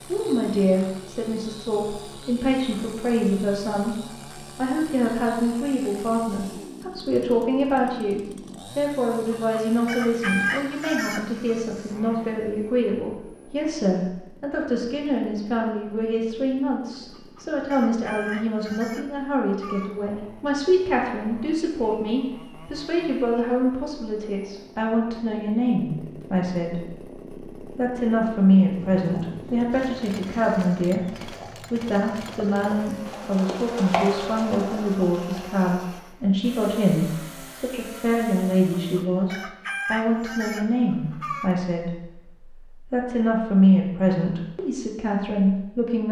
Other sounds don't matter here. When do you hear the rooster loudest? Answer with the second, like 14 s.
10 s.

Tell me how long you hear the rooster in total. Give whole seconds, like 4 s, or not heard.
8 s.